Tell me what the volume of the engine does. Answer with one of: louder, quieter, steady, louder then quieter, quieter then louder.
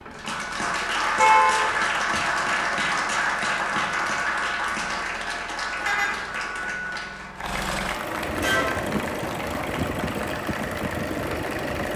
louder.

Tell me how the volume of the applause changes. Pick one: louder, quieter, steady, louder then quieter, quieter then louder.
quieter.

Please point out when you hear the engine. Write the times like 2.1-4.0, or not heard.
0.0-11.9.